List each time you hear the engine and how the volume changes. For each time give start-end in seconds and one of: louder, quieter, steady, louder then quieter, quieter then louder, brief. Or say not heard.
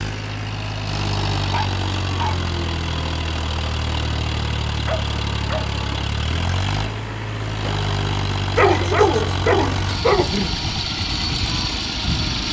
0.0-12.4 steady.